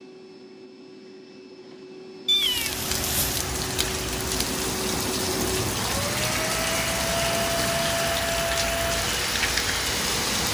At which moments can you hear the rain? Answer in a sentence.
You can hear the rain from 2.4 to 10.5 s.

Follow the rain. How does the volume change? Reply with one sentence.
The loudness of the rain stays about the same.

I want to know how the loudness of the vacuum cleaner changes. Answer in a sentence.
The loudness of the vacuum cleaner goes up.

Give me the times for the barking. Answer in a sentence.
You can't hear the barking here.